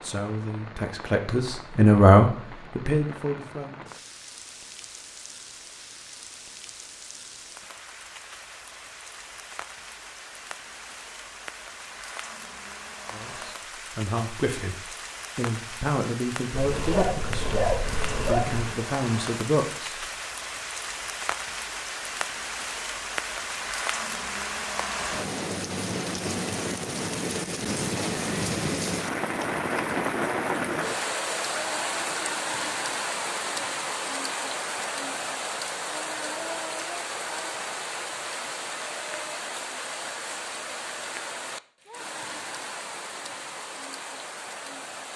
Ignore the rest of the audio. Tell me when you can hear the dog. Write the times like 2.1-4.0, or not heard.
16.6-18.8.